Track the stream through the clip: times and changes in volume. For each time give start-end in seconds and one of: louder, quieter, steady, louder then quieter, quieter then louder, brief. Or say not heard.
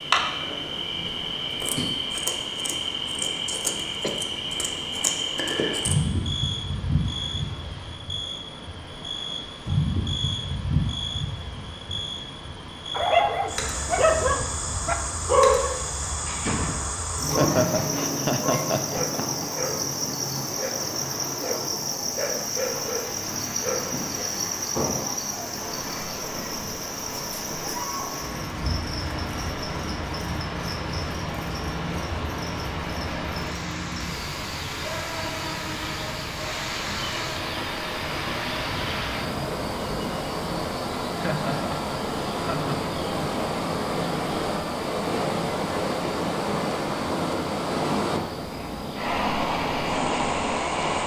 0.0-51.0 louder.